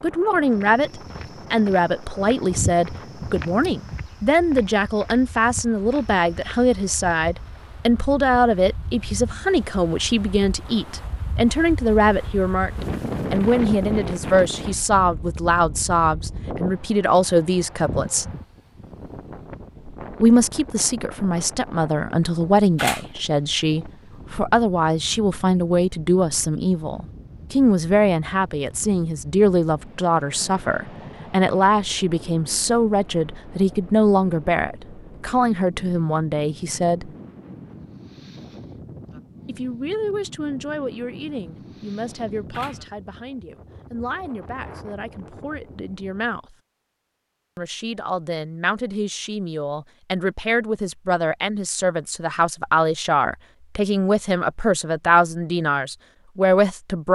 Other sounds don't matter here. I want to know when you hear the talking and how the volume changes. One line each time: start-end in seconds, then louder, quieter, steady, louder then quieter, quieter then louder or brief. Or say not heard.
0.0-18.2 steady
20.2-37.1 steady
39.5-46.5 quieter
47.5-57.1 louder.